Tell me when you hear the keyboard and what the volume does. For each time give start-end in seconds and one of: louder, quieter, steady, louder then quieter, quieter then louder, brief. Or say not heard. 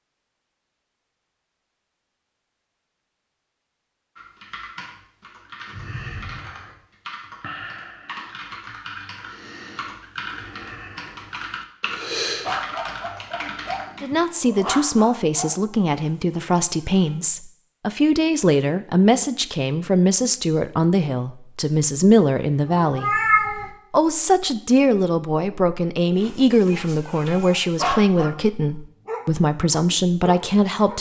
4.2-14.2 louder.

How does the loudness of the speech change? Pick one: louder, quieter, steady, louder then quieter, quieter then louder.
steady.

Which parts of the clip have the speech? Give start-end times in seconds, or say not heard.
14.0-23.1, 23.9-30.9.